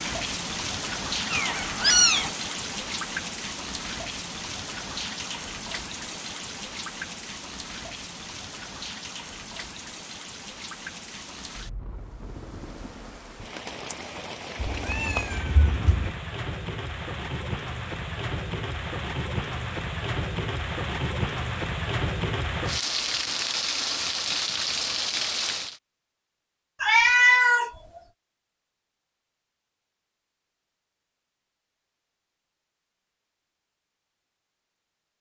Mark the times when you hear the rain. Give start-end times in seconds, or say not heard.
0.0-25.8.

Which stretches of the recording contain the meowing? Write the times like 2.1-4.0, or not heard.
1.3-2.3, 14.6-16.1, 26.8-27.7.